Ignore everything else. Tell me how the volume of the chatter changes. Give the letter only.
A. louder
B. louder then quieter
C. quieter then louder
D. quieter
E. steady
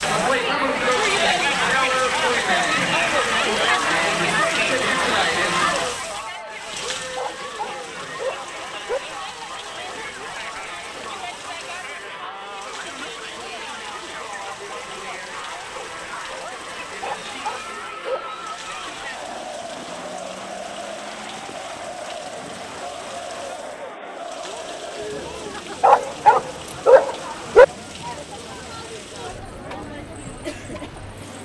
D.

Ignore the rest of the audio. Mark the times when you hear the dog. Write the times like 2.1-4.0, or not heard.
7.2-9.0, 17.0-18.4, 25.8-27.6.